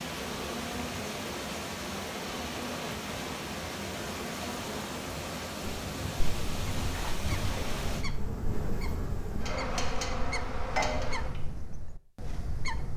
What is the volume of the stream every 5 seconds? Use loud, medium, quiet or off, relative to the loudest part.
loud, loud, off.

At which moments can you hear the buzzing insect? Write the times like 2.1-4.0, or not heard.
0.0-11.4.